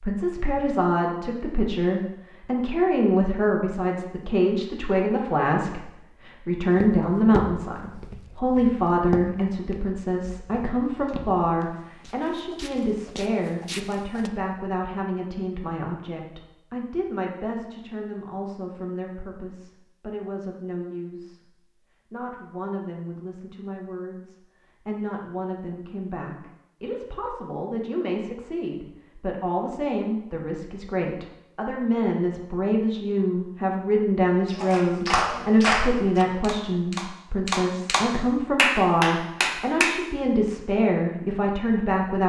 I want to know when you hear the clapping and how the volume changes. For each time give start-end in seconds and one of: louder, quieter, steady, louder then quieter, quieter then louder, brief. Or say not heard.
34.5-40.0 quieter then louder.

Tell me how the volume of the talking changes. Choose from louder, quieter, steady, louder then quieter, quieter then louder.
quieter then louder.